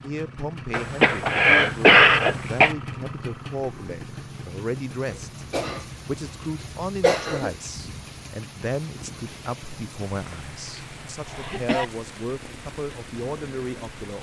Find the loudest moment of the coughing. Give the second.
2 s.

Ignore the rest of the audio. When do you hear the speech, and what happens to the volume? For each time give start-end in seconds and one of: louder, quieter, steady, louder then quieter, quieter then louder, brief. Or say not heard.
0.0-14.1 steady.